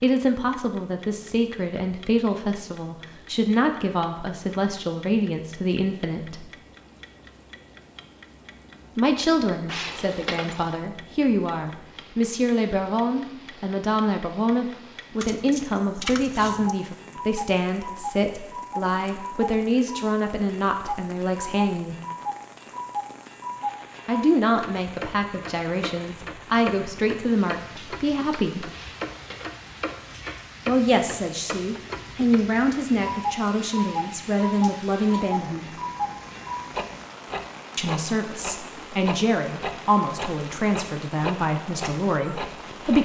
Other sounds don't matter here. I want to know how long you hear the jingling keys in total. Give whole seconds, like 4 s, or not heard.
4 s.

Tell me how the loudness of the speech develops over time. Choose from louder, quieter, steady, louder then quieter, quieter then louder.
steady.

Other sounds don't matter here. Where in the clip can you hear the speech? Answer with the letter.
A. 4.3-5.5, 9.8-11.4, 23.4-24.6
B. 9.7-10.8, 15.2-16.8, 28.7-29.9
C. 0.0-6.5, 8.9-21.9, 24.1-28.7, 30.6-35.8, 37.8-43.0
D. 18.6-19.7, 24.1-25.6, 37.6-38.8
C.